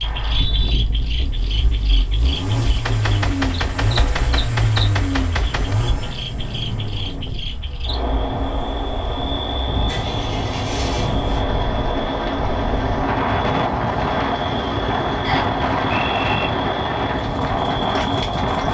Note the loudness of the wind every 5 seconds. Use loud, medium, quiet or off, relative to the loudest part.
quiet, medium, loud, loud.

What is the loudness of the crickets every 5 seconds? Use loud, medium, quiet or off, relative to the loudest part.
medium, loud, loud, loud.